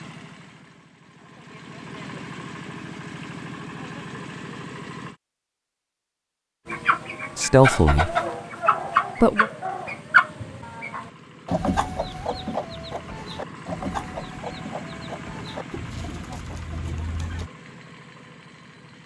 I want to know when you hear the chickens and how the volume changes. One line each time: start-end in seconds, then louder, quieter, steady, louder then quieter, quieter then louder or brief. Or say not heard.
6.7-17.5 quieter.